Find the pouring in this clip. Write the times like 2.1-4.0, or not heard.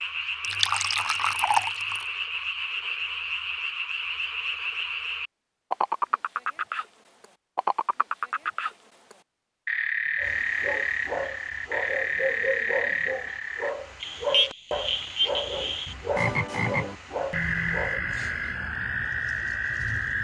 0.4-2.0.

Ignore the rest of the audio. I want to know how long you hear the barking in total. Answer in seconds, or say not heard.
8 s.